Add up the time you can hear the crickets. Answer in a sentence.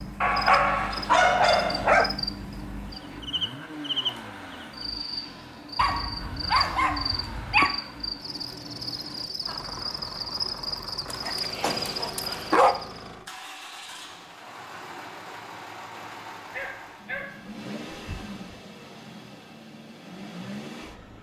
You can hear the crickets for 13 seconds altogether.